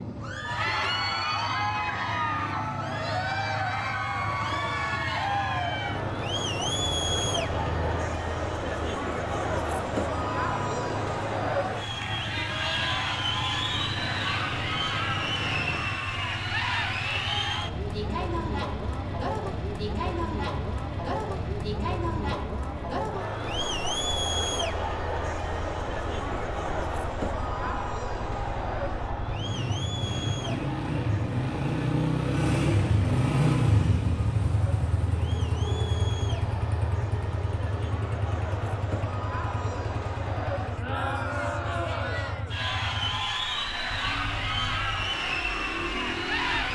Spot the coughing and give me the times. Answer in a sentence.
You can't hear the coughing here.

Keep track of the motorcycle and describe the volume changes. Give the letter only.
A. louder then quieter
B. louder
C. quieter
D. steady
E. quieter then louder
A.